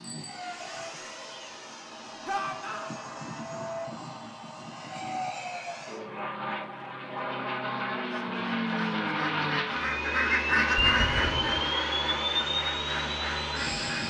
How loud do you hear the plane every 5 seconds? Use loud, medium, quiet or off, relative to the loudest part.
medium, loud, loud.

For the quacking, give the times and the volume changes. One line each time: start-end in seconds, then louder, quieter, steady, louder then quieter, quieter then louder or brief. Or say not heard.
8.1-14.0 louder then quieter.